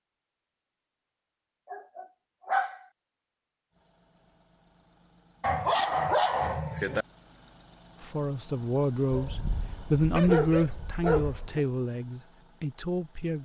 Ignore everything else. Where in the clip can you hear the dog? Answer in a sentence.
The dog can be heard from 1.7 to 2.8 s, from 5.4 to 7.0 s and from 9.1 to 11.6 s.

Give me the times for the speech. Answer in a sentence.
The speech can be heard from 8.0 to 13.4 s.